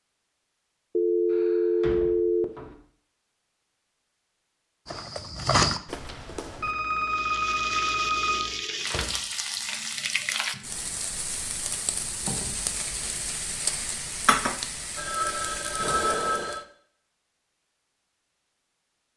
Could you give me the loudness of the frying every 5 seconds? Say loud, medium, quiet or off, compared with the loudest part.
off, loud, loud, medium.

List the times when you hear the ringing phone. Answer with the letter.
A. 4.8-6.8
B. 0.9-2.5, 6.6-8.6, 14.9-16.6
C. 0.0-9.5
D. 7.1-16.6
B.